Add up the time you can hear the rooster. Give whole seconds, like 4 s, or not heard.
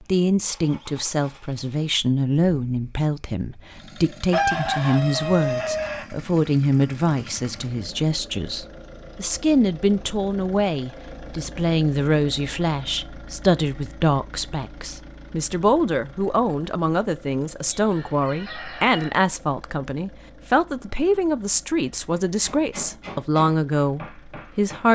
3 s.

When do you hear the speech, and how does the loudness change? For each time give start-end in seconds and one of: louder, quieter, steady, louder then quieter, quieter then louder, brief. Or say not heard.
0.1-24.8 steady.